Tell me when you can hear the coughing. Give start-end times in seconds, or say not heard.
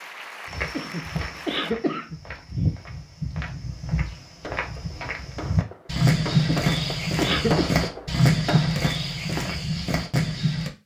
0.8-2.2, 6.5-7.7.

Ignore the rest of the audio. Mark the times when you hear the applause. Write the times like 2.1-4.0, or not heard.
0.0-1.8.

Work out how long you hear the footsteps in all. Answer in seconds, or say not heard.
10 s.